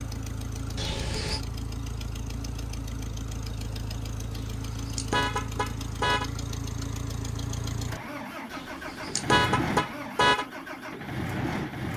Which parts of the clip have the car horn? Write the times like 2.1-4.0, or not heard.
0.8-1.4, 4.3-6.3, 8.5-10.4.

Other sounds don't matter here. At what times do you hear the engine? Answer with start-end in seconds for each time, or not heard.
0.0-11.9.